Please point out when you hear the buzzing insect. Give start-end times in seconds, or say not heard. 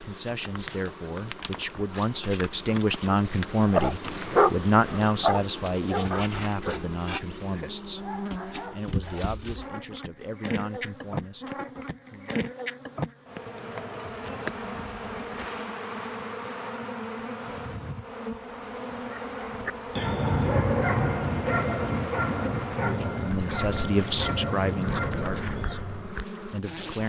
0.0-27.0.